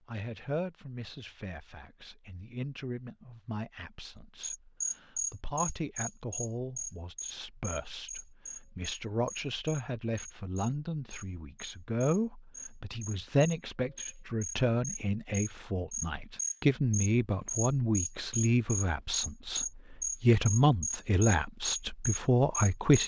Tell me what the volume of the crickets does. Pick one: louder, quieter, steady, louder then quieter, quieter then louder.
quieter then louder.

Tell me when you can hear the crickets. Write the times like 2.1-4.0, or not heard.
4.4-23.0.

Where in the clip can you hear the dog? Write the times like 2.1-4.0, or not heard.
not heard.